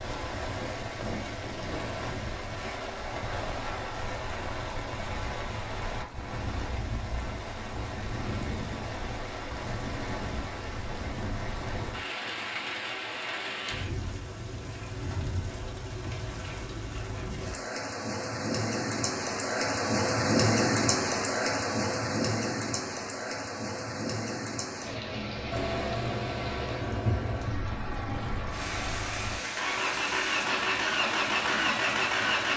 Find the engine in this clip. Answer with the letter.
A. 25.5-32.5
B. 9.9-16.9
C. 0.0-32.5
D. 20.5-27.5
A.